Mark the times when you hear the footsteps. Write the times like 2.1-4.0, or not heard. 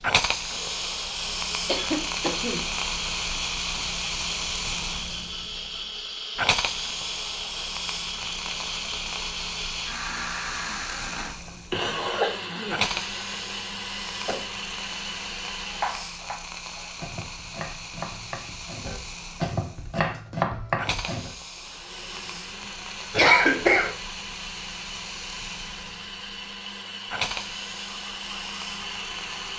not heard.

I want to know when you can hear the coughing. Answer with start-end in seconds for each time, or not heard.
1.6-3.8, 11.8-12.8, 23.1-23.9.